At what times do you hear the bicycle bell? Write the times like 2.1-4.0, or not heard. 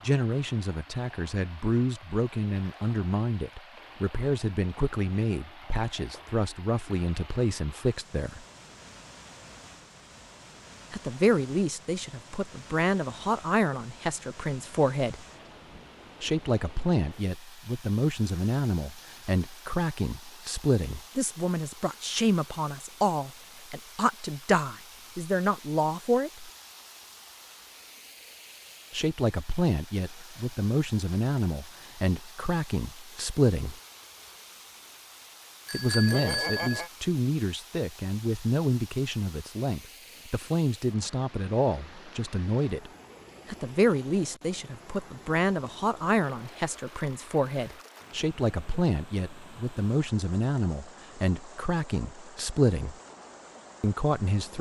35.6-36.9.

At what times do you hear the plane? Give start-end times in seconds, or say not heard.
not heard.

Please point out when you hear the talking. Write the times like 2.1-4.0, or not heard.
0.0-8.4, 10.9-15.2, 16.2-26.5, 28.9-33.8, 35.7-53.0, 53.8-54.5.